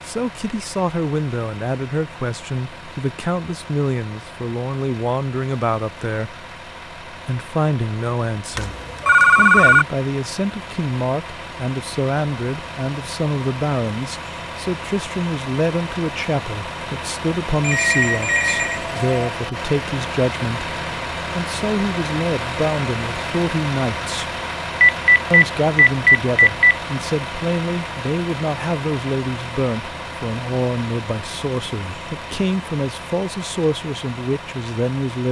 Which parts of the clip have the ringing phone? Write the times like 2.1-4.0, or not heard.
8.6-9.8, 17.6-19.2, 24.8-26.8.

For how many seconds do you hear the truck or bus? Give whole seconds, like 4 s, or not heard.
35 s.